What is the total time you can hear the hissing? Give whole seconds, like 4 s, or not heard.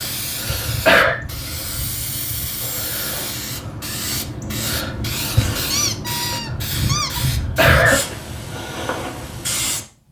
10 s.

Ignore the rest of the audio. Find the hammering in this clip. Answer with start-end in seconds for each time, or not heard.
not heard.